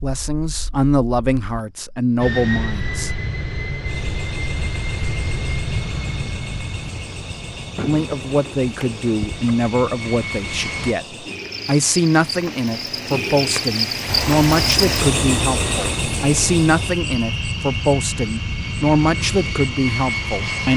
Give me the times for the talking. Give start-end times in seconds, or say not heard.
0.0-3.1, 7.8-20.7.